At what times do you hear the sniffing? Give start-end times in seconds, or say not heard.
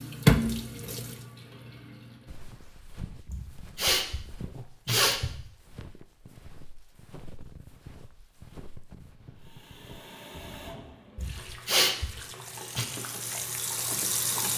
3.2-4.2, 4.8-5.5, 11.2-12.1.